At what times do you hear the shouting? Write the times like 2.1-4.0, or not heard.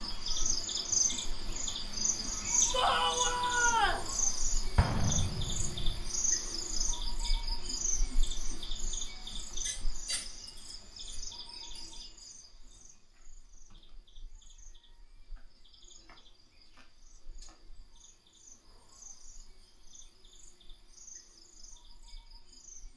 2.7-4.0.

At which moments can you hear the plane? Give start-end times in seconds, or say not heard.
not heard.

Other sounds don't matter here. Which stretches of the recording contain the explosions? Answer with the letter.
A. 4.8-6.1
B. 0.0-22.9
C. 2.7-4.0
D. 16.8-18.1
A.